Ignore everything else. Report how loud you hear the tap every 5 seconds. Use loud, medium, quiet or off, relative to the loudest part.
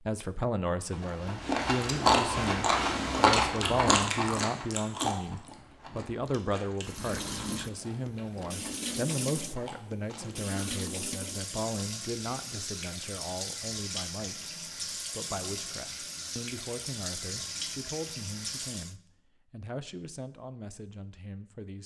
off, loud, loud, loud, off.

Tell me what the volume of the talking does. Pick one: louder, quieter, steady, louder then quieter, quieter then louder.
quieter.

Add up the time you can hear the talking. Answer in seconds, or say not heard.
22 s.